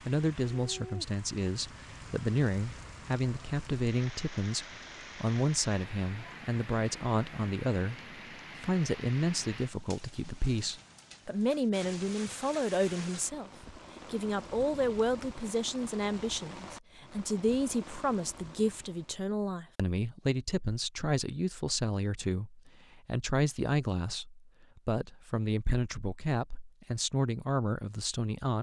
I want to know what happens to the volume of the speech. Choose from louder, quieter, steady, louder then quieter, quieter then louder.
steady.